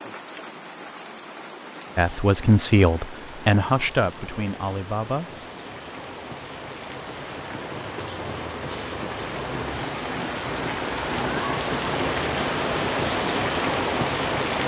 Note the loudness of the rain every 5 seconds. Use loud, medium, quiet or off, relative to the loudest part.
quiet, medium, loud.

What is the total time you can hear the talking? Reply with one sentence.
You can hear the talking for 3 seconds altogether.